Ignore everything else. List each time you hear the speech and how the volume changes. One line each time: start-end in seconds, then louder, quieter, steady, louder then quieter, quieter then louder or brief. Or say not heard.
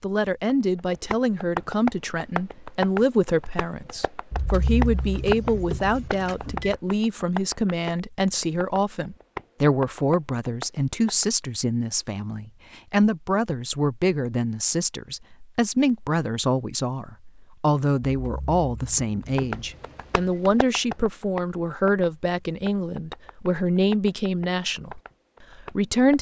0.0-26.1 steady.